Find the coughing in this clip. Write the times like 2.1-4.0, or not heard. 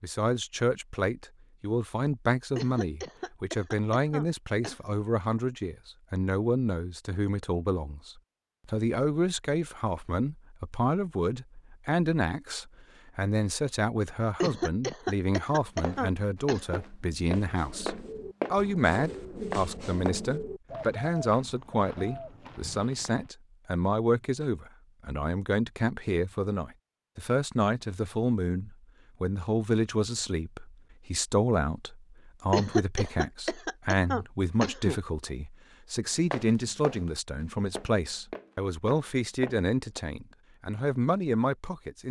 2.5-5.0, 14.4-16.8, 32.5-35.0.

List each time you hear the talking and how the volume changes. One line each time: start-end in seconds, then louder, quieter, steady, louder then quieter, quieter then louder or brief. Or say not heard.
0.0-42.0 steady.